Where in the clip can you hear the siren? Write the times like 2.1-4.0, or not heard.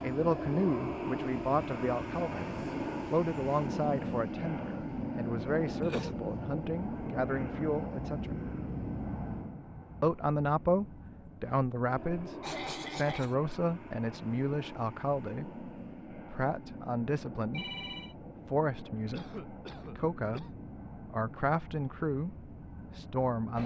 not heard.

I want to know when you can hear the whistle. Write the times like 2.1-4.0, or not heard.
not heard.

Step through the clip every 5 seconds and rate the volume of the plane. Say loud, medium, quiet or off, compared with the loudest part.
loud, loud, medium, medium, medium.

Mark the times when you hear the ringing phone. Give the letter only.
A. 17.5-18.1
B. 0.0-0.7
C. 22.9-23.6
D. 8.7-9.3
A.